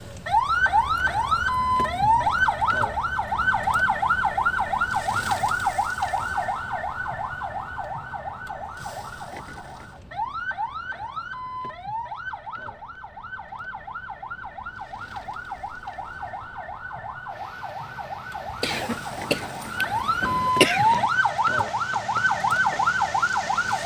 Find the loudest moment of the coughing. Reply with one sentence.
The volume of the coughing peaks at 21 seconds.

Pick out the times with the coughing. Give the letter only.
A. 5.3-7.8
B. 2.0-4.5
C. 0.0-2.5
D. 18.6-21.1
D.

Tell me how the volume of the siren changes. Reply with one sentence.
The volume of the siren goes down, then up.